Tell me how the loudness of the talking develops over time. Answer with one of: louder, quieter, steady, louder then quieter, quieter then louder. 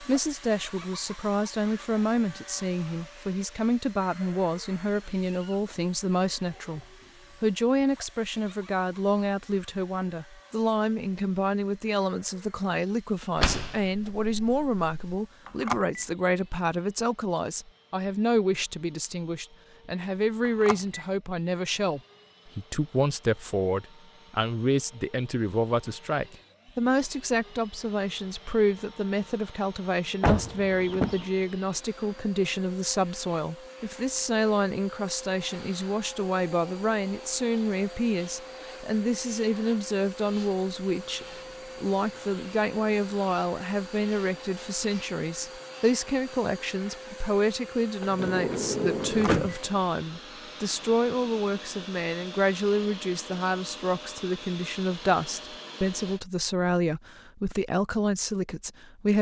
steady.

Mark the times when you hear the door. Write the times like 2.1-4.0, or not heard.
13.3-15.2, 30.2-31.2, 48.0-49.5.